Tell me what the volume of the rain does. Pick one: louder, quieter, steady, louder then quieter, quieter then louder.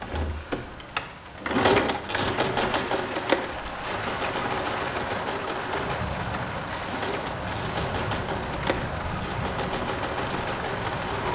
louder.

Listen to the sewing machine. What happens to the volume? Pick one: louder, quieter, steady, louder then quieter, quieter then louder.
quieter.